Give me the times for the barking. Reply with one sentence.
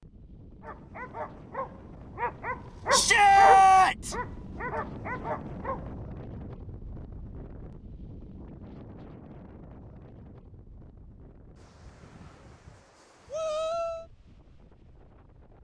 You can hear the barking from 0.6 to 5.9 s.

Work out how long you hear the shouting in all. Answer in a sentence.
You can hear the shouting for 2 seconds altogether.